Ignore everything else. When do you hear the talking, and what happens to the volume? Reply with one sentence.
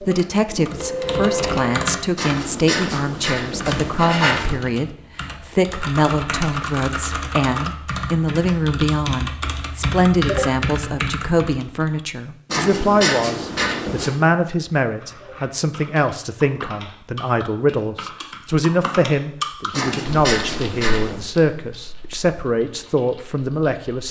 The talking can be heard from 0.0 to 24.0 s, at a steady volume.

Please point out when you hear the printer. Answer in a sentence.
You can hear the printer from 0.0 to 2.0 s.